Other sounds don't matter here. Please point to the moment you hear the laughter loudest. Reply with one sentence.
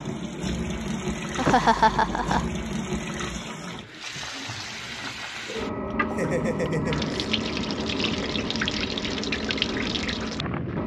The loudest moment of the laughter is at 2 seconds.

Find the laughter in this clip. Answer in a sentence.
The laughter can be heard from 1.4 to 2.5 s and from 5.5 to 7.2 s.